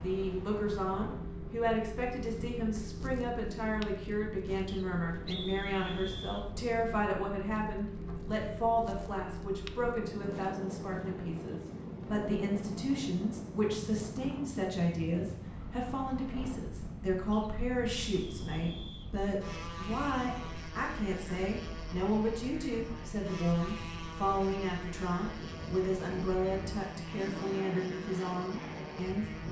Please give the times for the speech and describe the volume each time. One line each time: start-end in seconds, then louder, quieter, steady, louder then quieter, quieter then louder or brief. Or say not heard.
0.0-29.3 steady.